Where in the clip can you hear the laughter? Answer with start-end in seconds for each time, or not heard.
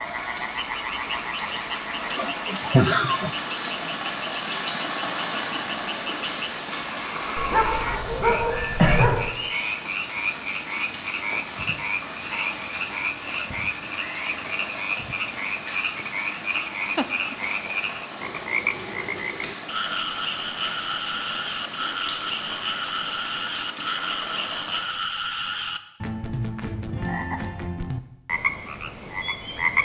2.1-3.3, 16.9-17.4.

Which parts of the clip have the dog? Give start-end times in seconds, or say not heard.
7.3-9.2.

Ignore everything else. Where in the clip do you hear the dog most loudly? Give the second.
9 s.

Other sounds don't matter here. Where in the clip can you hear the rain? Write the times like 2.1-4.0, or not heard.
0.0-24.9.